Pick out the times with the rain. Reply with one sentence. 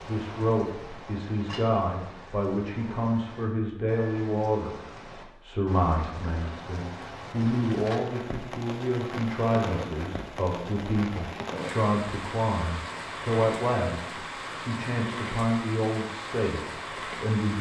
The rain can be heard from 0.0 to 17.5 s.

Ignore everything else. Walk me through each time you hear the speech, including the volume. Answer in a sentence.
You can hear the speech from 0.0 to 17.5 s, at a steady volume.